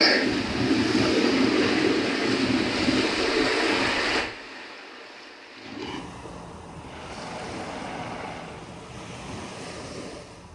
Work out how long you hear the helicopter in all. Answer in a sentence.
You can hear the helicopter for 2 seconds altogether.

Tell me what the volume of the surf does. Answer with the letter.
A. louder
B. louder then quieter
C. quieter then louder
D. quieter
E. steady
D.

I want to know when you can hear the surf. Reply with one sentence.
You can hear the surf from 0.0 to 10.4 s.